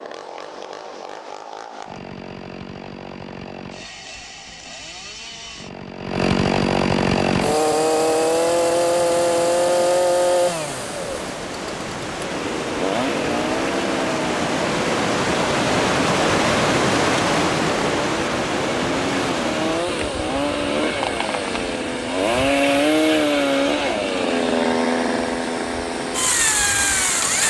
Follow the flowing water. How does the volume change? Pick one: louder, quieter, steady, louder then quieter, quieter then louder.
louder then quieter.